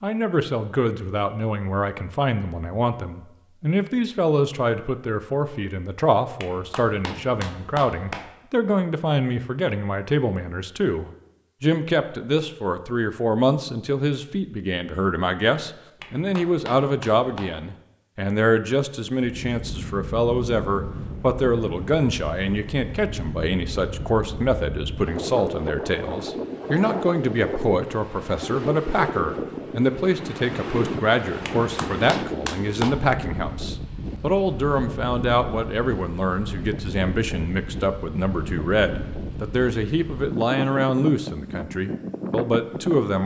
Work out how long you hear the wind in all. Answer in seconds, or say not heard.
24 s.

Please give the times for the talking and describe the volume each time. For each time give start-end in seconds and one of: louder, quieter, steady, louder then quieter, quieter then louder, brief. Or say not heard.
0.0-43.2 steady.